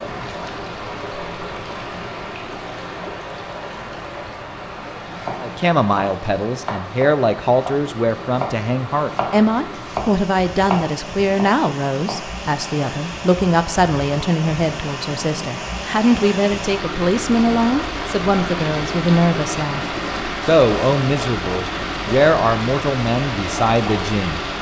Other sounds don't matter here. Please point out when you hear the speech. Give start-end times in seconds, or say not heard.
5.4-19.8, 20.4-24.4.